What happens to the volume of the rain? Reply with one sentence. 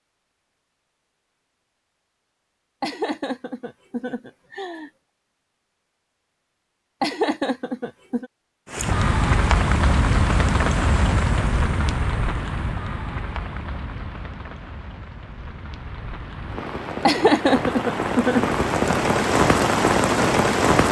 The volume of the rain goes down, then up.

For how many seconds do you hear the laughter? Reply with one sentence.
You can hear the laughter for 5 seconds altogether.